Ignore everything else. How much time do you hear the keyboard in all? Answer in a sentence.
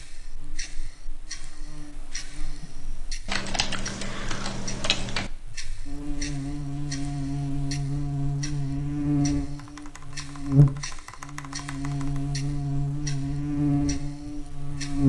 The keyboard can be heard for 5 seconds in total.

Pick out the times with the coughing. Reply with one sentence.
The coughing can't be heard in this clip.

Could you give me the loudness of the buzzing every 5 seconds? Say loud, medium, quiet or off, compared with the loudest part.
quiet, loud, loud.